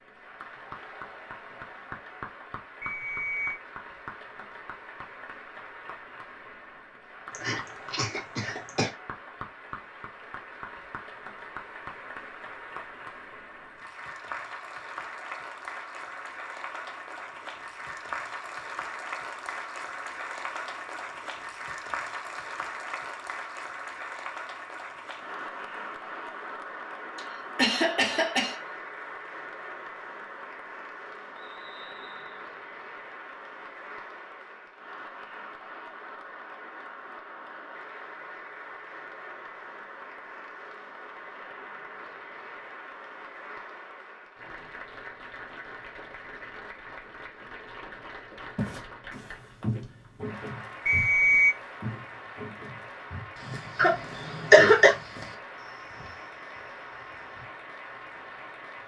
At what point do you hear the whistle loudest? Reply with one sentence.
The loudest moment of the whistle is at 51 seconds.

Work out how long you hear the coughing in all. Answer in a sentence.
The coughing can be heard for 4 seconds in total.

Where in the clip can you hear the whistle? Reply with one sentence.
You can hear the whistle from 2.8 to 3.6 s, from 31.4 to 32.5 s and from 50.9 to 51.5 s.